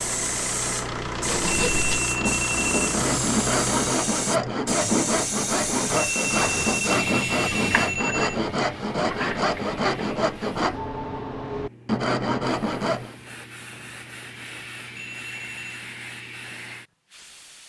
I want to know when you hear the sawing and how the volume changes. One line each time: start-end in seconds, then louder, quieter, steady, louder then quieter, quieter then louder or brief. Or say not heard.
1.1-13.2 steady.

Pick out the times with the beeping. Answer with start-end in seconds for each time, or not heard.
1.5-2.7, 6.0-8.4, 14.9-15.8.